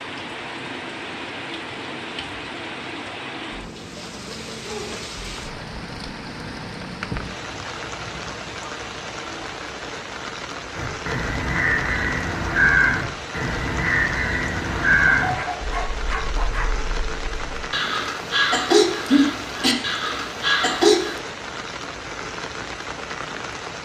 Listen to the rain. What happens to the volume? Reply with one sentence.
The loudness of the rain stays about the same.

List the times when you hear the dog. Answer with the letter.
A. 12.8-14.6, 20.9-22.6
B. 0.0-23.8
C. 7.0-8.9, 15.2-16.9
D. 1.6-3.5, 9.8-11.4
C.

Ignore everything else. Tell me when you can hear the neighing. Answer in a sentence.
The neighing can't be heard in this clip.